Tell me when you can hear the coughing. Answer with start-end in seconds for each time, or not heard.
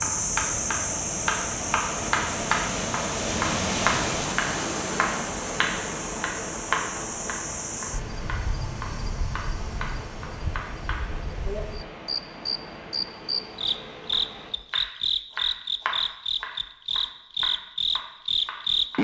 not heard.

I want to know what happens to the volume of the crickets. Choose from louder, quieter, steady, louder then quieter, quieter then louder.
quieter then louder.